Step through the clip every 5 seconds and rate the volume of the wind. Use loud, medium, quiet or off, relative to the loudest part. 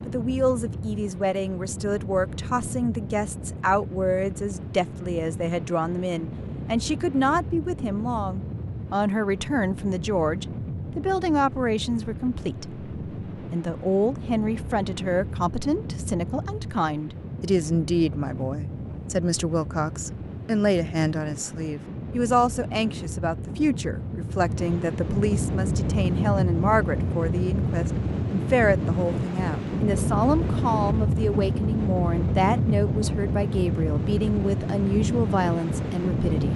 medium, medium, medium, medium, medium, loud, loud, loud.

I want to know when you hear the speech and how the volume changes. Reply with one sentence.
The speech can be heard from 0.1 to 36.5 s, at a steady volume.